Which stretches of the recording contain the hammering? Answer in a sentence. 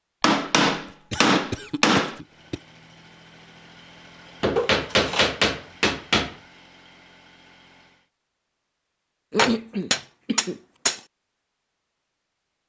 The hammering can be heard from 0.2 to 2.2 s, from 4.4 to 6.3 s and from 9.3 to 11.0 s.